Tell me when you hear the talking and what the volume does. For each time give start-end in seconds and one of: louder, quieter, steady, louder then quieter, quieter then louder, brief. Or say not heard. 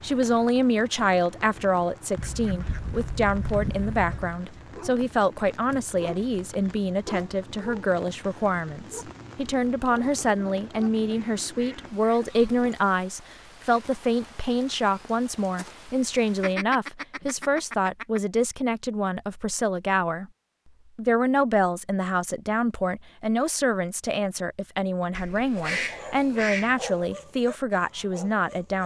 0.0-20.3 steady
20.9-28.8 steady.